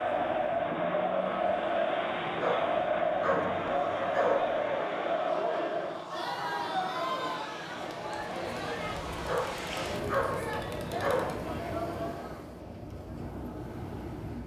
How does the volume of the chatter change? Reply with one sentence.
The loudness of the chatter goes down.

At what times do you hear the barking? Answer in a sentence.
The barking can be heard from 2.4 to 4.5 s and from 9.2 to 11.4 s.